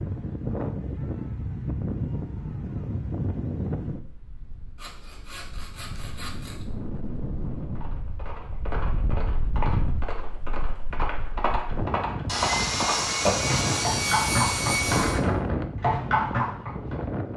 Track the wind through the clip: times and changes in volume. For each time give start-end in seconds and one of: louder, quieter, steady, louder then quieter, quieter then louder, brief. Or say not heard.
0.0-17.3 quieter then louder.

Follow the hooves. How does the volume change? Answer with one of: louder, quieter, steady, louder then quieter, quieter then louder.
louder.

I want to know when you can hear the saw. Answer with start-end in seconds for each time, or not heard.
4.8-6.7, 12.2-15.2.